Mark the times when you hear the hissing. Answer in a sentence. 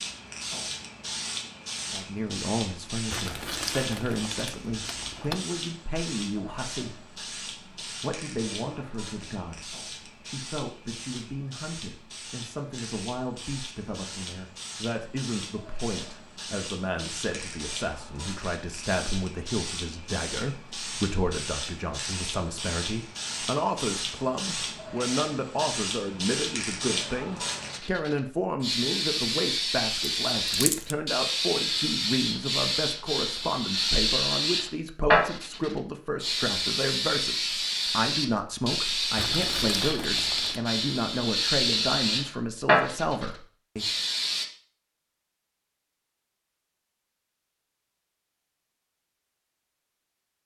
The hissing can be heard from 0.0 to 44.5 s.